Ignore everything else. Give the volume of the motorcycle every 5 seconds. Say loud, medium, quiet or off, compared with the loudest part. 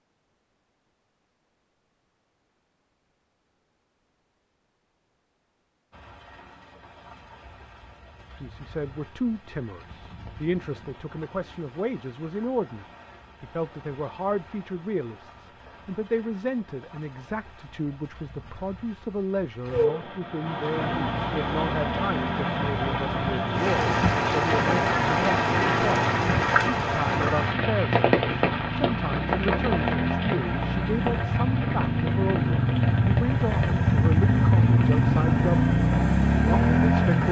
off, off, off, off, quiet, medium, loud, loud.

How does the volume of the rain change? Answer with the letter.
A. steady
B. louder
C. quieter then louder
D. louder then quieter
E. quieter
D.